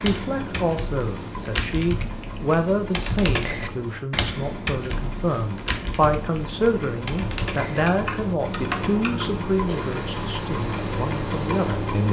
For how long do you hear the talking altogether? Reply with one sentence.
You can hear the talking for 12 seconds altogether.